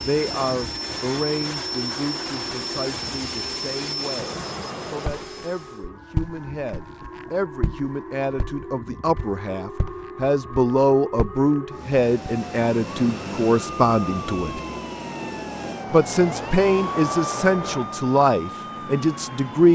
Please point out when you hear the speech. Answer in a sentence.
The speech can be heard from 0.0 to 14.6 s and from 15.9 to 19.7 s.